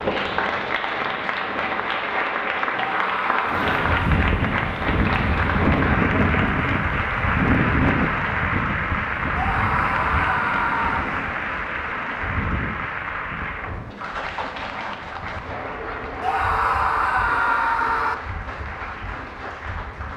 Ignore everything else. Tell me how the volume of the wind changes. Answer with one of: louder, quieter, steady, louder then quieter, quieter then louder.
quieter.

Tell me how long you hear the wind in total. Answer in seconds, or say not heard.
17 s.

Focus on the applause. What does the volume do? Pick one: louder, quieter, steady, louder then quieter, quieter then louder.
quieter.